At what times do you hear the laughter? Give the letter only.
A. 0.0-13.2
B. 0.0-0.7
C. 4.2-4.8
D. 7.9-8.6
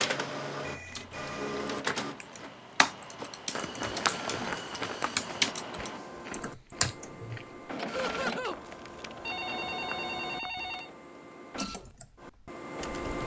D.